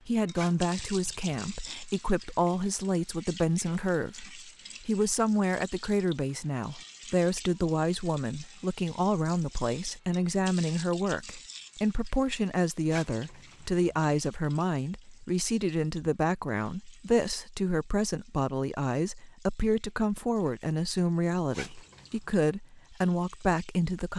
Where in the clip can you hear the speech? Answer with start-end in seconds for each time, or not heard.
0.1-24.1.